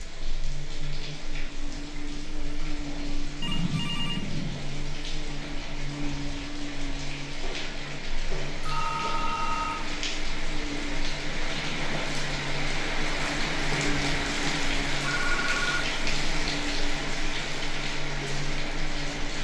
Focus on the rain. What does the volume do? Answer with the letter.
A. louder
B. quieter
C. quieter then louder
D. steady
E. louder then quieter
A.